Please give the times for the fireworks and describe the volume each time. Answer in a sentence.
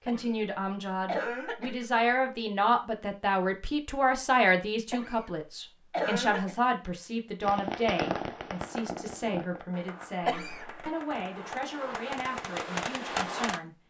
You can hear the fireworks from 7.4 to 13.6 s, getting quieter then louder.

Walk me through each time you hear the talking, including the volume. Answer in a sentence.
The talking can be heard from 0.1 to 13.8 s, getting quieter.